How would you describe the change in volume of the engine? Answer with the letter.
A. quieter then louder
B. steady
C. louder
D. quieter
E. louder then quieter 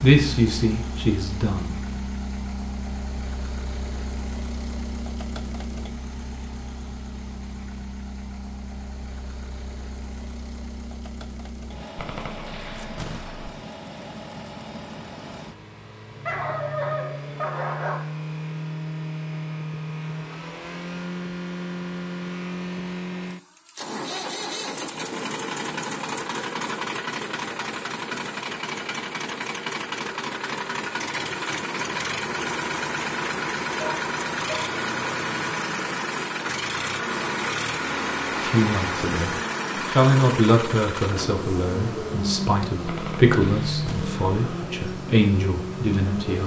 C.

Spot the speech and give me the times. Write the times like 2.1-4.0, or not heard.
0.0-1.8, 38.4-46.4.